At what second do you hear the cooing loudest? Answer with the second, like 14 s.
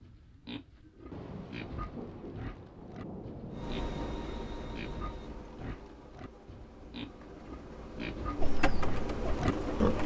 9 s.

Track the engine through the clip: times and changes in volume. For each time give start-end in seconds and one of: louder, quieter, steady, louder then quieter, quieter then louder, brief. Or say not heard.
3.5-10.0 quieter then louder.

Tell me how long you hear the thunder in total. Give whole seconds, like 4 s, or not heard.
4 s.